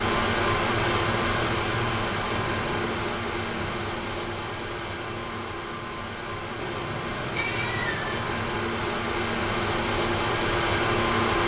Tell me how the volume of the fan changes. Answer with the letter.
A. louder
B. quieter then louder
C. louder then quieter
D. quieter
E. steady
B.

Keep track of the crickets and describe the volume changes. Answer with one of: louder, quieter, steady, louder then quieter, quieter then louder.
steady.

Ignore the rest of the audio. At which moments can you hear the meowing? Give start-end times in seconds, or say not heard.
2.5-3.0, 6.5-8.6.